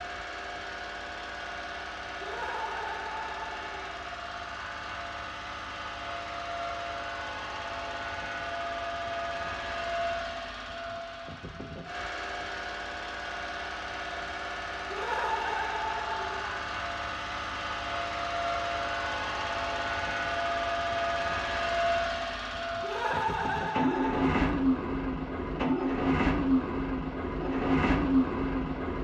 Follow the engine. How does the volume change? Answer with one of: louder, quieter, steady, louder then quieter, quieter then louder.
louder.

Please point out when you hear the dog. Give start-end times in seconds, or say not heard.
not heard.